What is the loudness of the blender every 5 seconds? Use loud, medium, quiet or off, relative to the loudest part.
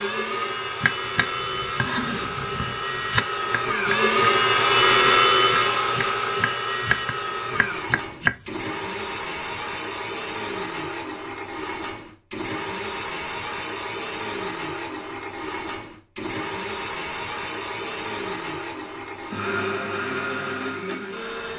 loud, loud, medium, medium, medium.